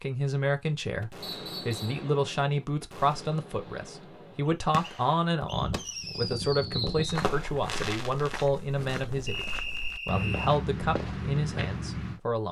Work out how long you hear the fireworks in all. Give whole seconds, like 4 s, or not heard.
8 s.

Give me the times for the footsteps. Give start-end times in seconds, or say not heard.
7.0-12.2.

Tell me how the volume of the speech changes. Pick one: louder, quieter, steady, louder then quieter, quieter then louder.
steady.